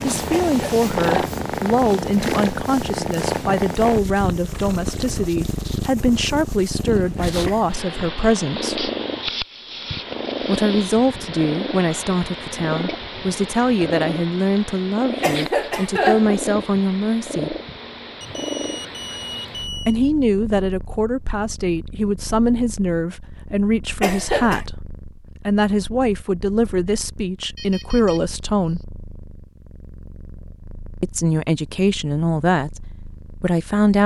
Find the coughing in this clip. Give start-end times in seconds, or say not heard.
0.3-1.4, 15.2-16.4, 24.0-24.6.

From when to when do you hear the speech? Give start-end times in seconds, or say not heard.
0.0-8.9, 10.4-17.6, 19.9-28.8, 31.0-34.0.